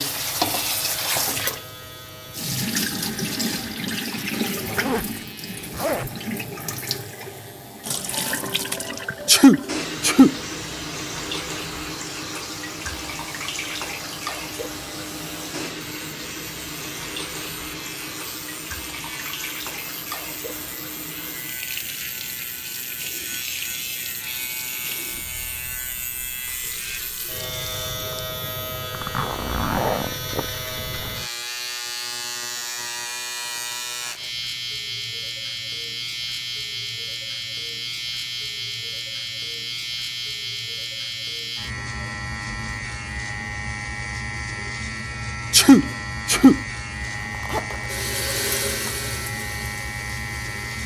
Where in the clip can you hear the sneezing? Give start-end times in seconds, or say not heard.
9.2-10.3, 45.5-46.6.